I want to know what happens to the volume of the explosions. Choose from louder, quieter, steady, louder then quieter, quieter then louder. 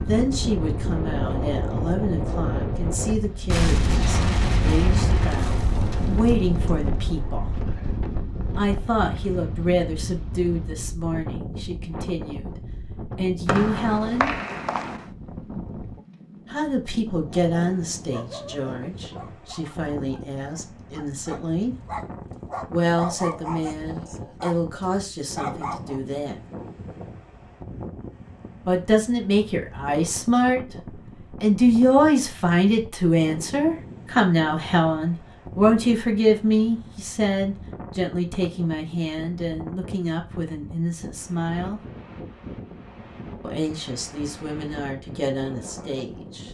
quieter.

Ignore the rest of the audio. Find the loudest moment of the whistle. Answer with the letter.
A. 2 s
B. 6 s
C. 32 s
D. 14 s
D.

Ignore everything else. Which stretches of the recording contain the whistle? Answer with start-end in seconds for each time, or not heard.
13.4-15.1.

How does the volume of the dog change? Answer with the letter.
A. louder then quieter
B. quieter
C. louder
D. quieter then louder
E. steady
D.